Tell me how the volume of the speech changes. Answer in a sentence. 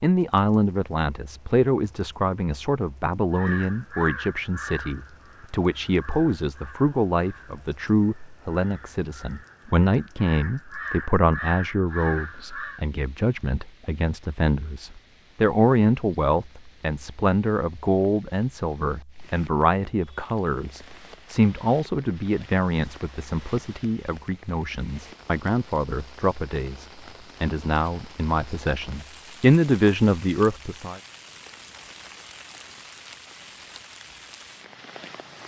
The loudness of the speech stays about the same.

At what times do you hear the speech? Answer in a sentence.
The speech can be heard from 0.0 to 31.0 s.